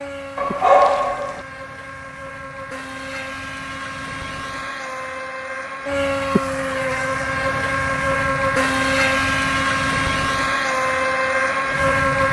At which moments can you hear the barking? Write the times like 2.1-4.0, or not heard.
0.3-1.4.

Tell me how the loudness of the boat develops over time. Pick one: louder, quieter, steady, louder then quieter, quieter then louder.
louder.